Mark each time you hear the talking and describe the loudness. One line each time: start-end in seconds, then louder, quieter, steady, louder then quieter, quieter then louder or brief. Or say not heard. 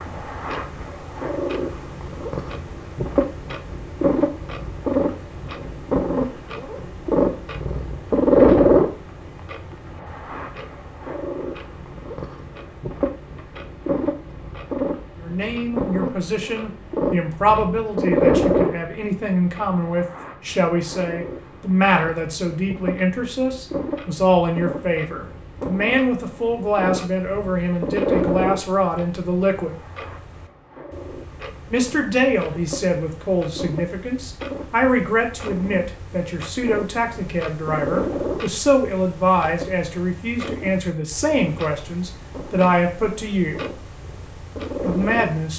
15.2-29.8 steady
31.6-43.7 steady
44.8-45.5 brief.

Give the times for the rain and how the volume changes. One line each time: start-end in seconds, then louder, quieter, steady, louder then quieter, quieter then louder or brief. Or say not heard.
not heard.